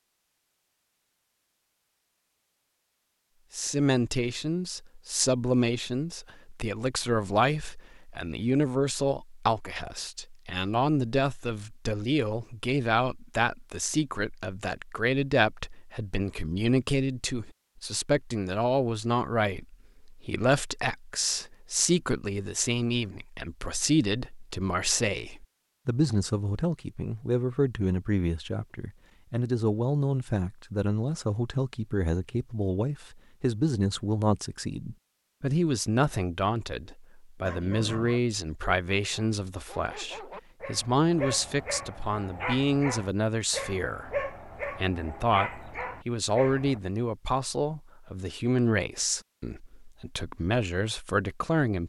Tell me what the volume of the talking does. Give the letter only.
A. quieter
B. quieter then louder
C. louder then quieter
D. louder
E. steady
E.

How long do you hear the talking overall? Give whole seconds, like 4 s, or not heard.
48 s.